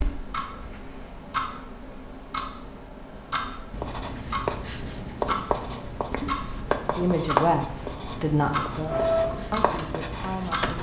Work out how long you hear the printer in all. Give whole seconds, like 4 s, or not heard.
2 s.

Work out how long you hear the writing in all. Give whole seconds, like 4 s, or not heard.
7 s.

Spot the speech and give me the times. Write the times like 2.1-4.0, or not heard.
7.0-10.7.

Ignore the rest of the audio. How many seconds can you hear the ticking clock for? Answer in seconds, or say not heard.
11 s.